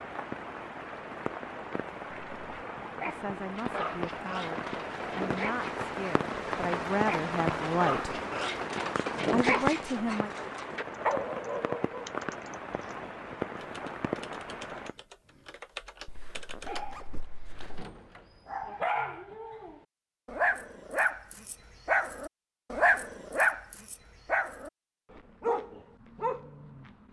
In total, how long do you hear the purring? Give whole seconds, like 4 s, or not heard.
not heard.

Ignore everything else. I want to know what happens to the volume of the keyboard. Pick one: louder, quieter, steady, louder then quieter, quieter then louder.
quieter then louder.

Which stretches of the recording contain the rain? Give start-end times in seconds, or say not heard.
0.0-14.9.